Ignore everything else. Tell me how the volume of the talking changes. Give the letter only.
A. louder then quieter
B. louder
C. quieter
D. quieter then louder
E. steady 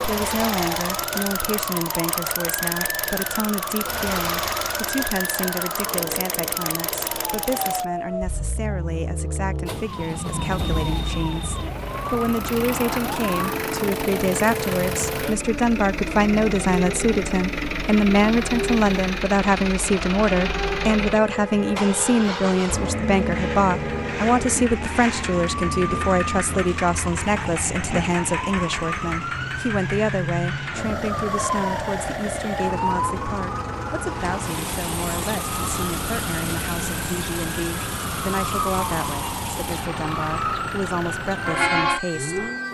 A.